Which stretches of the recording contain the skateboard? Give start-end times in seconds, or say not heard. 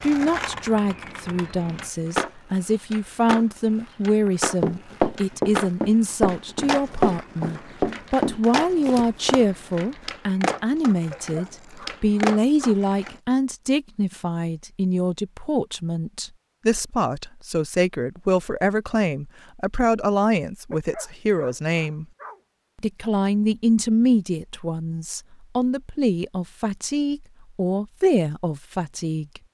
0.0-13.2.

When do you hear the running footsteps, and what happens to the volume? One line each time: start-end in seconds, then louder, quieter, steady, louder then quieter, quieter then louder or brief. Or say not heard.
4.2-9.4 steady.